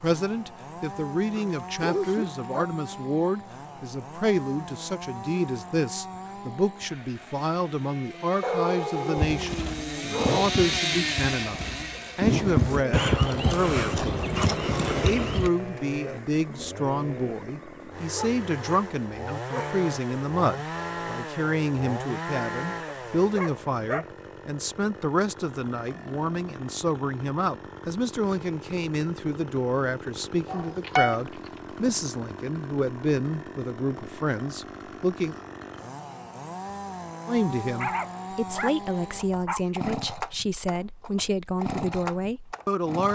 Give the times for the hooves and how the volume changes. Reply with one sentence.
You can hear the hooves from 9.2 to 15.5 s, getting quieter then louder.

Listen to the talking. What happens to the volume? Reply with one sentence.
The volume of the talking stays about the same.